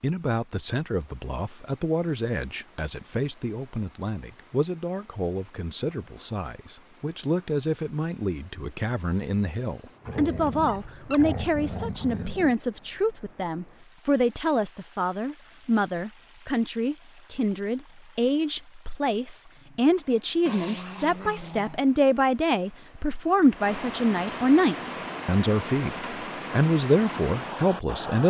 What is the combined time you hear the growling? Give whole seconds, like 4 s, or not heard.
4 s.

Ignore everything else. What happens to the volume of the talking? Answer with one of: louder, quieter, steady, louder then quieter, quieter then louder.
louder.